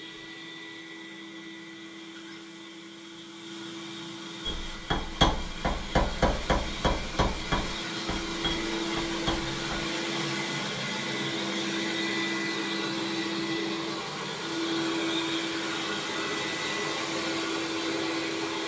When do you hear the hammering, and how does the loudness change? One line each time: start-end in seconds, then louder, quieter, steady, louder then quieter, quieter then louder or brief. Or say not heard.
4.5-9.8 quieter.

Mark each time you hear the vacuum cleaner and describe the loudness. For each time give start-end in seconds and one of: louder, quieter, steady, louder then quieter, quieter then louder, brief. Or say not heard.
0.0-18.6 louder.